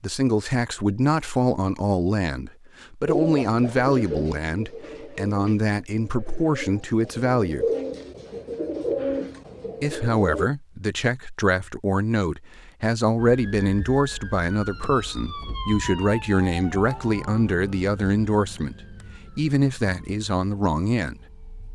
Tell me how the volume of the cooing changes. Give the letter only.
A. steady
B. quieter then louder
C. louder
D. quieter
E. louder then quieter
B.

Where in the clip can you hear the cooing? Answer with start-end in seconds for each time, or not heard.
3.0-10.5.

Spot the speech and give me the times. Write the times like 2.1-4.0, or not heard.
0.0-7.7, 9.8-18.8, 19.4-21.2.